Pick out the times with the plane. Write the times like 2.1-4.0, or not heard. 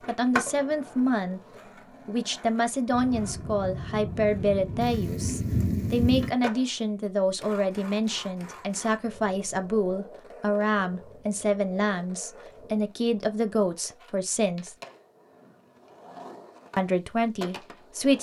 2.9-5.7.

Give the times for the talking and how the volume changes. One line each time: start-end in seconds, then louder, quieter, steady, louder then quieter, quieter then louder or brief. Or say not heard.
0.1-1.4 brief
2.0-14.8 steady
16.8-18.1 brief.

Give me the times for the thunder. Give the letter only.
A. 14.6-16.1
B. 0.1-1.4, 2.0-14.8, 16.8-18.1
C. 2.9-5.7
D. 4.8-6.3
D.